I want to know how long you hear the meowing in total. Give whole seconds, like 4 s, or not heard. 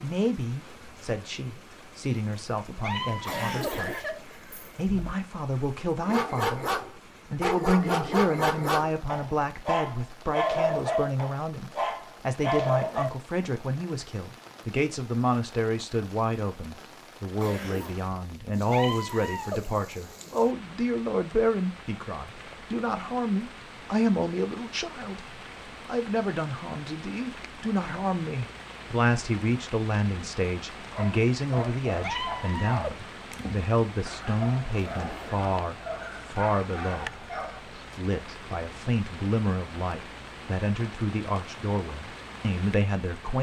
3 s.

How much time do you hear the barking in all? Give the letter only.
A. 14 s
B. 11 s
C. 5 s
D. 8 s
A.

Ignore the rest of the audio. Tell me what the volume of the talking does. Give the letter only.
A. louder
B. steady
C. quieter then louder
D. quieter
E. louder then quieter
B.